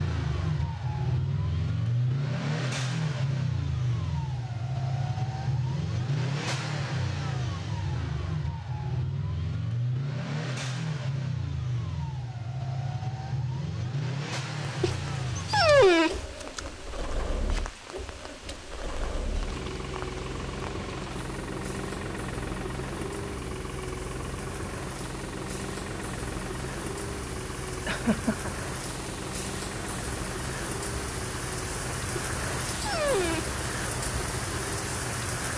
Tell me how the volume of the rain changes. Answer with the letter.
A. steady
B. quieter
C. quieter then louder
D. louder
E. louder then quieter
D.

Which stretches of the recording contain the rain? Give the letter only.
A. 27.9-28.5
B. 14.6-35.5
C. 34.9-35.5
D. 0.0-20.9
B.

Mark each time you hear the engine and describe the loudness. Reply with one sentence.
You can hear the engine from 0.0 to 35.5 s, getting quieter.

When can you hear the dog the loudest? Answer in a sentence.
The volume of the dog peaks at 16 seconds.